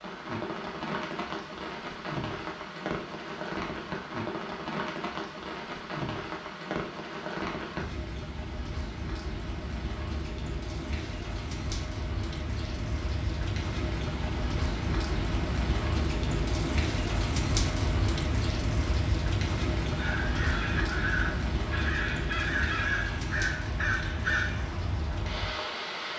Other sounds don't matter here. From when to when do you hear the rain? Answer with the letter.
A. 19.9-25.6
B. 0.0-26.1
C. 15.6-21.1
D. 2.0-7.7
B.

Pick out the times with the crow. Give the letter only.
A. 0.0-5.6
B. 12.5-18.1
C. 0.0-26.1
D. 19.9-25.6
D.